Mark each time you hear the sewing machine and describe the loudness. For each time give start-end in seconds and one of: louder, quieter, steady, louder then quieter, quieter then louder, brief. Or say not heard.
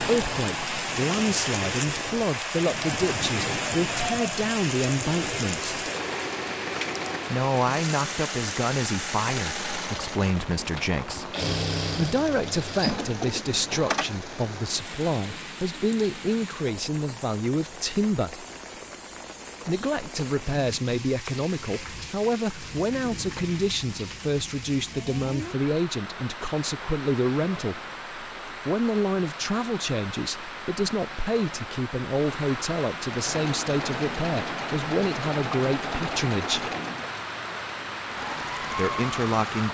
0.0-14.2 louder
33.1-39.6 quieter then louder.